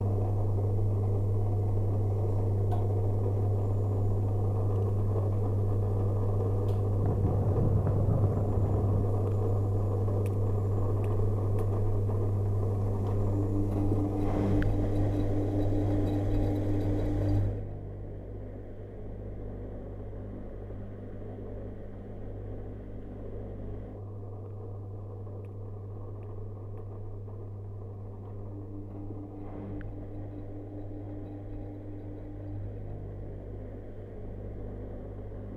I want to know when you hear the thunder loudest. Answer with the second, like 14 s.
8 s.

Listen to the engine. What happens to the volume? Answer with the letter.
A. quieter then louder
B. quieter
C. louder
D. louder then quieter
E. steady
B.